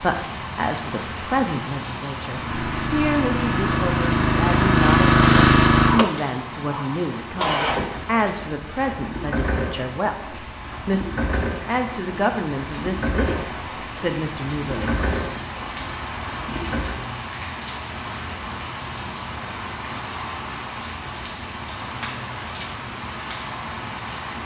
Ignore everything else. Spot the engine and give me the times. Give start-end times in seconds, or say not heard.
2.2-17.0.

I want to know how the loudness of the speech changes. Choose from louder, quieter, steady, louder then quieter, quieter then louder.
steady.